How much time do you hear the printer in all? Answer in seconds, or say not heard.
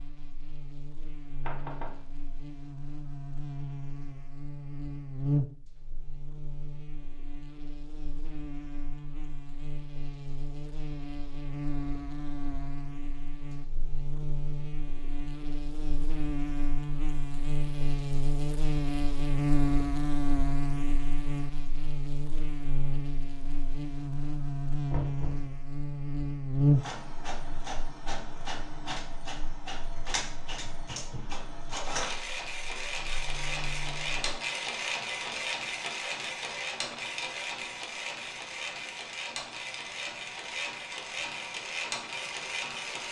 16 s.